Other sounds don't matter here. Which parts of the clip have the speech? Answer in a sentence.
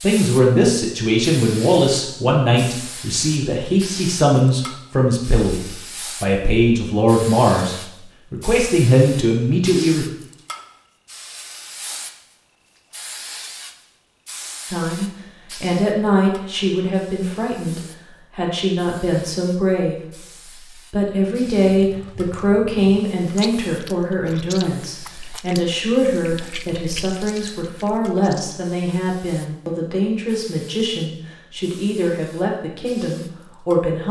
The speech can be heard from 0.0 to 5.6 s, from 6.2 to 10.1 s and from 14.7 to 34.0 s.